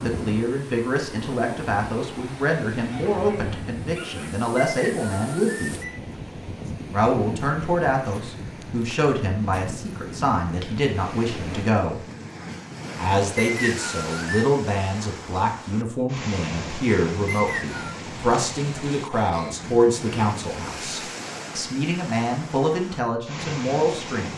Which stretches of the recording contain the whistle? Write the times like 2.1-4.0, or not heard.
4.7-6.0, 13.3-14.4, 17.2-17.9.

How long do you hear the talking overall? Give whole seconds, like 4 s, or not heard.
22 s.